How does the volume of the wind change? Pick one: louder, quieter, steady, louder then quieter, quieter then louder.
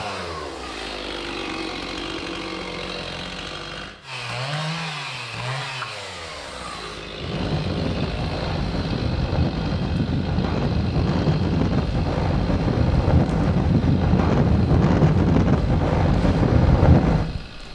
louder.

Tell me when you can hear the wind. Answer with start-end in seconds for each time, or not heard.
7.2-17.6.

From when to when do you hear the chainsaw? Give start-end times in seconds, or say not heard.
0.0-17.7.